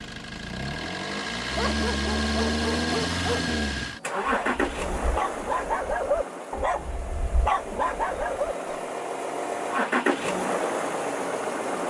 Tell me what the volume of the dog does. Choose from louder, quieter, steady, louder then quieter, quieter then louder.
louder.